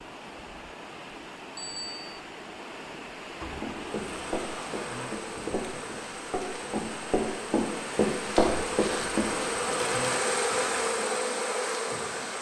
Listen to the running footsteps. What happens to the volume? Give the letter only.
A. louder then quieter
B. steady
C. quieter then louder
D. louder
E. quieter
D.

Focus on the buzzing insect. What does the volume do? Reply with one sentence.
The volume of the buzzing insect goes up.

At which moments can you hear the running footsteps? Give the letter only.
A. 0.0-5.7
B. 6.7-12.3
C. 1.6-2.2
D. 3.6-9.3
D.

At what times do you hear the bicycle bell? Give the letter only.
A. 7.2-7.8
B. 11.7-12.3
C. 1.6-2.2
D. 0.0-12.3
C.